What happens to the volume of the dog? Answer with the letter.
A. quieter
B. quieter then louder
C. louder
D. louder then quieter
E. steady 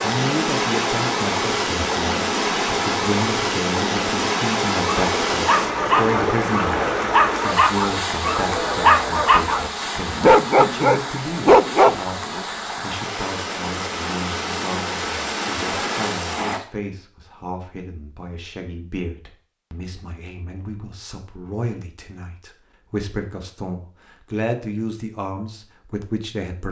C.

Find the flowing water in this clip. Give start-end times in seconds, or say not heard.
0.0-16.6.